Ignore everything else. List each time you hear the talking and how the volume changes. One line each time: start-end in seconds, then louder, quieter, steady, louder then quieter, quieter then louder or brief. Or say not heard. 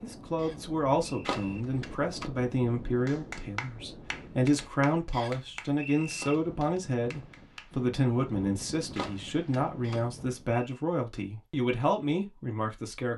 0.0-13.1 steady.